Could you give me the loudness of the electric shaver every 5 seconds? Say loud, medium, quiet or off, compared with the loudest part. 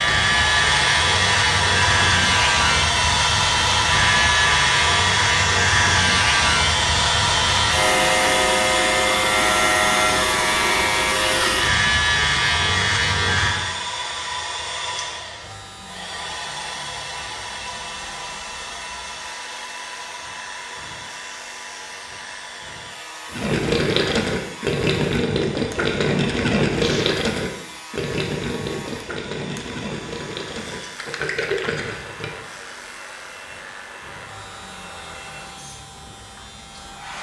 loud, loud, loud, quiet, quiet, quiet, quiet, quiet.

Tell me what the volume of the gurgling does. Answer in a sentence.
The volume of the gurgling goes down.